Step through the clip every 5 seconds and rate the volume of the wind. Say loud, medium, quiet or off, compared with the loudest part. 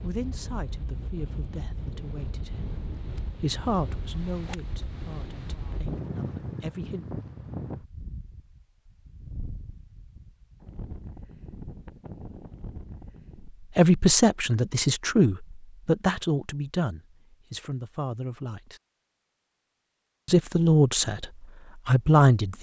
loud, loud, medium, off, off.